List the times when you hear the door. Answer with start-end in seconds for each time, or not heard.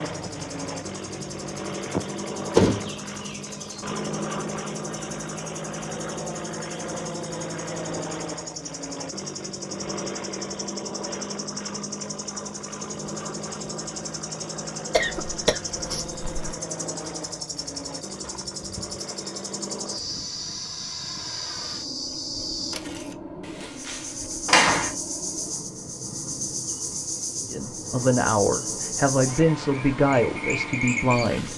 2.5-3.4, 23.6-24.9.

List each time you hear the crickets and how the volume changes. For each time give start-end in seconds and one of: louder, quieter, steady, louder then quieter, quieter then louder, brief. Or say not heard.
0.0-31.5 louder.